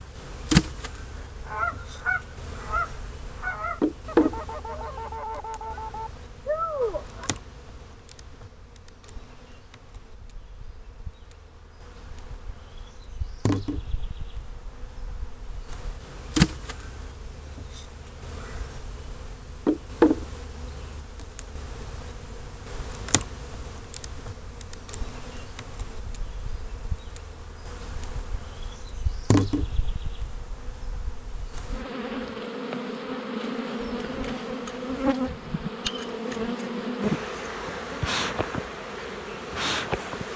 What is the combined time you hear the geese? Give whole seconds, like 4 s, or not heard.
6 s.